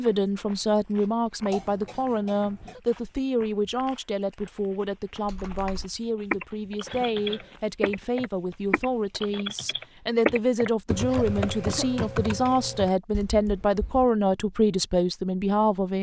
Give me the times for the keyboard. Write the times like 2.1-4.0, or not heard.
5.2-14.1.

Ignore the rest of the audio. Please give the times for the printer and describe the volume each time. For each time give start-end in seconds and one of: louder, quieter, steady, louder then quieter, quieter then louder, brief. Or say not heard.
not heard.